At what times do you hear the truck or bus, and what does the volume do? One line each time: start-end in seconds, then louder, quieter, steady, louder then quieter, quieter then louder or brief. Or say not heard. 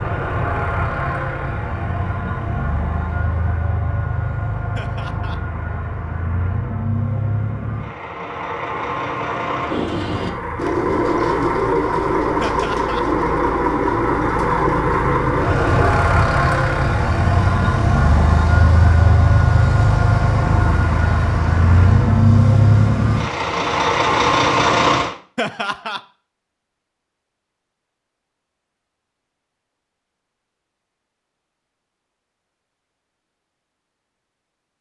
0.0-25.1 louder.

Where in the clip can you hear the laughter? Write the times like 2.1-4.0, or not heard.
4.8-5.4, 12.4-13.1, 25.4-26.0.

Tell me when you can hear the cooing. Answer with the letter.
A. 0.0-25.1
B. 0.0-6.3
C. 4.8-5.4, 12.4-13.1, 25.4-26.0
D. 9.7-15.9
D.